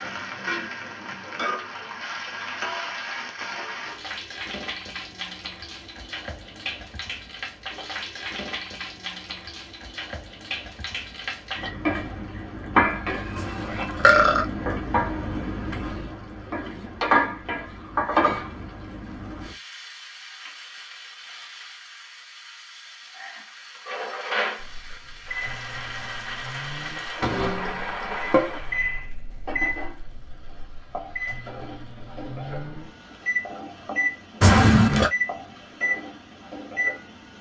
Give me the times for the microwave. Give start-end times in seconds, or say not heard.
24.6-37.3.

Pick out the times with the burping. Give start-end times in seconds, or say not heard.
13.3-14.4, 34.4-35.1.